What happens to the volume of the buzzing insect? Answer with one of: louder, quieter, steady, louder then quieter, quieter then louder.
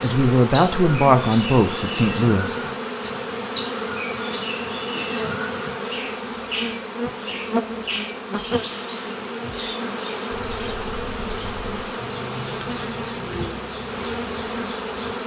steady.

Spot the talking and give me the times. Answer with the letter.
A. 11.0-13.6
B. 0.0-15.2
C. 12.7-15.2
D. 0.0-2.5
D.